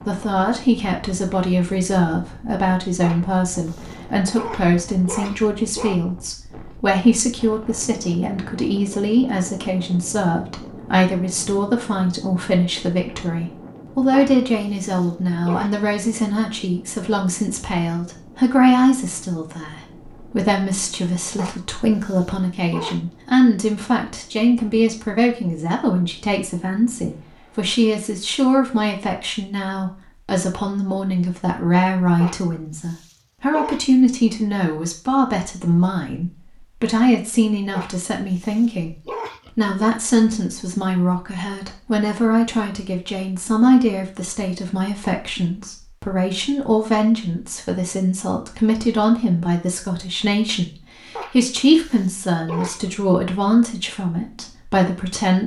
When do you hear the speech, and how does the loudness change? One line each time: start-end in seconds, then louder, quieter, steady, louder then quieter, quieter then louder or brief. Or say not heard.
0.1-55.4 steady.